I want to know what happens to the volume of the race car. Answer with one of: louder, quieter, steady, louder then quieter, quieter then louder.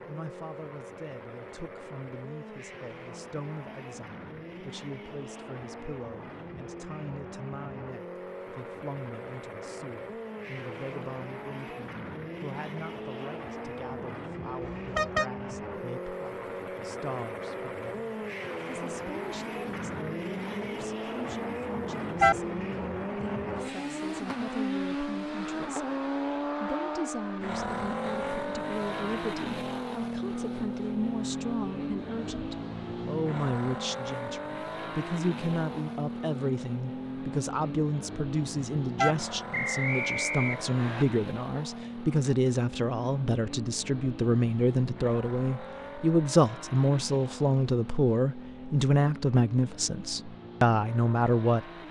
louder then quieter.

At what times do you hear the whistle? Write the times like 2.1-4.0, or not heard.
39.5-41.0.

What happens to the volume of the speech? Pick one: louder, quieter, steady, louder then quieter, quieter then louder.
louder.